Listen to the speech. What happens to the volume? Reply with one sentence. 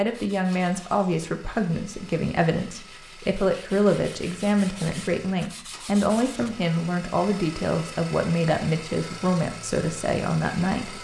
The loudness of the speech stays about the same.